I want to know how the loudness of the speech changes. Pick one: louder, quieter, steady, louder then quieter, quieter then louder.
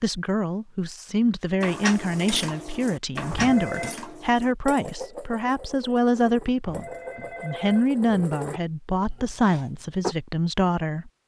steady.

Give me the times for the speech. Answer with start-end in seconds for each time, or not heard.
0.0-11.1.